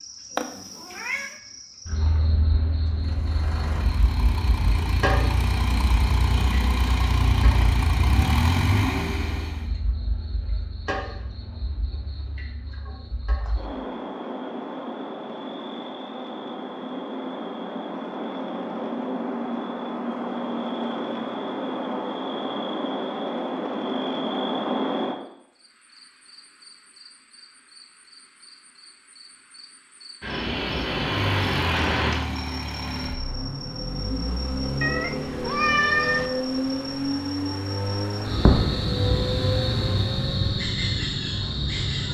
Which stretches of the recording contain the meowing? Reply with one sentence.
The meowing can be heard from 0.3 to 1.3 s and from 34.8 to 36.3 s.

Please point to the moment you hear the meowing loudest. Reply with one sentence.
The volume of the meowing peaks at 36 seconds.